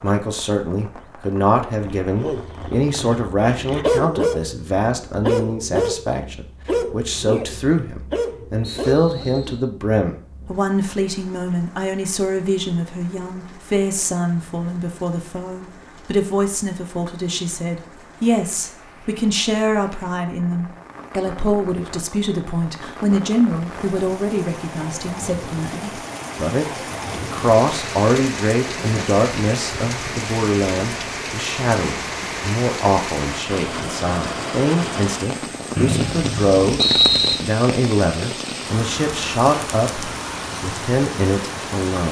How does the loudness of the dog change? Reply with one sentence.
The volume of the dog goes up, then down.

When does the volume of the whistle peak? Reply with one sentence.
The loudest moment of the whistle is at 37 seconds.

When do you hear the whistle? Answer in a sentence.
The whistle can be heard from 8.7 to 9.7 s and from 35.8 to 37.4 s.